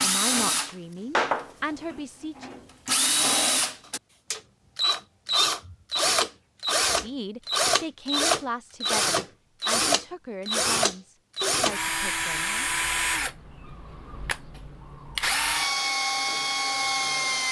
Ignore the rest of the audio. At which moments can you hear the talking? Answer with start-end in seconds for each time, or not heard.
0.0-2.5, 6.9-12.7.